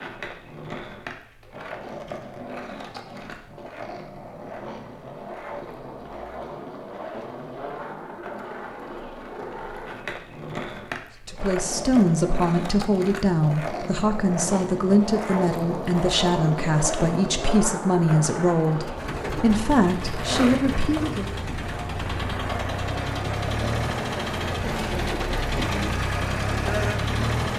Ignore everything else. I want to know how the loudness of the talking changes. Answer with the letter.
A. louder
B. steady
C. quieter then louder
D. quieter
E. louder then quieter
B.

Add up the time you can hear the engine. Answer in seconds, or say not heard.
9 s.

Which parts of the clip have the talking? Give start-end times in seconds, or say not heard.
11.2-21.3.